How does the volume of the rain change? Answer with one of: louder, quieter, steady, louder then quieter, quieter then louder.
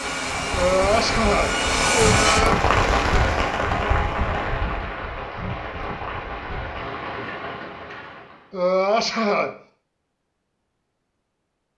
louder then quieter.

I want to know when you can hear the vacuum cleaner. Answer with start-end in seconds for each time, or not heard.
0.0-2.4.